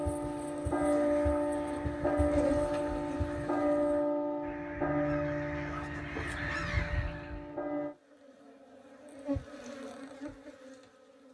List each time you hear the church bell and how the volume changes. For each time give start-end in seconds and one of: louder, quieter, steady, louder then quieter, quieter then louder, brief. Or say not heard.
0.0-8.0 quieter.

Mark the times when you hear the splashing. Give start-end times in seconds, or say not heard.
not heard.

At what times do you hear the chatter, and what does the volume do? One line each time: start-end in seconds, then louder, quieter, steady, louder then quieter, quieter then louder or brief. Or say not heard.
not heard.